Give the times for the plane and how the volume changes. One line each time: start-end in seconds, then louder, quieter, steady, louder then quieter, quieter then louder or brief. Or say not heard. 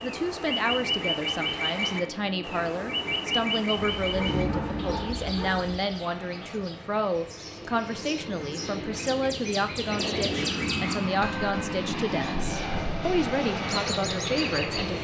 0.0-14.9 louder.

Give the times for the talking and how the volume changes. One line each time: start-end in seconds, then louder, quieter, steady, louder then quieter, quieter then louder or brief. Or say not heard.
0.0-14.9 steady.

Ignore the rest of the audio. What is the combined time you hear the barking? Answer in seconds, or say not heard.
2 s.